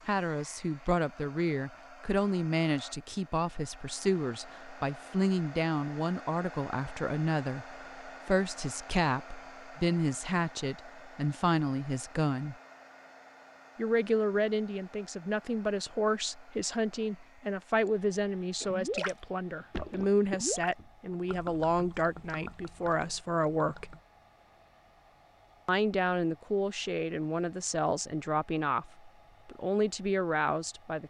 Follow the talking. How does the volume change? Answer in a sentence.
The volume of the talking stays about the same.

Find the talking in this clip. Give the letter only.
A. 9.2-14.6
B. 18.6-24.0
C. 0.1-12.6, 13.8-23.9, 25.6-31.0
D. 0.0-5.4
C.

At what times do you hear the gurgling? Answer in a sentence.
The gurgling can be heard from 18.6 to 24.0 s.